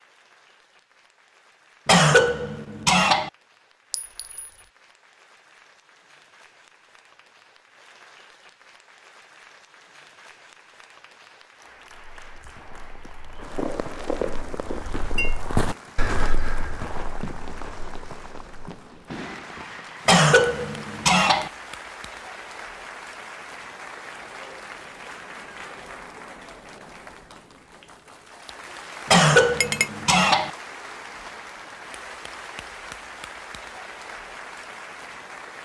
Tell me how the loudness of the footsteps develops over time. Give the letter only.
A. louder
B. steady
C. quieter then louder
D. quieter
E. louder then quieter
E.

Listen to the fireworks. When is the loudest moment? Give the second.
14 s.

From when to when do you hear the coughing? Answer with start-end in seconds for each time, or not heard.
1.9-3.3, 20.1-21.5, 29.1-30.5.